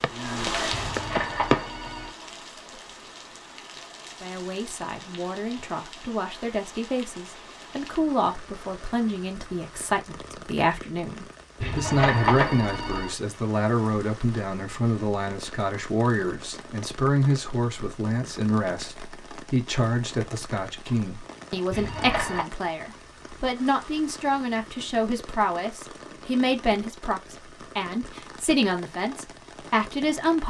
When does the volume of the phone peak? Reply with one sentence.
The volume of the phone peaks at 12 seconds.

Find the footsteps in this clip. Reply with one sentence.
The footsteps can be heard from 0.0 to 1.6 s.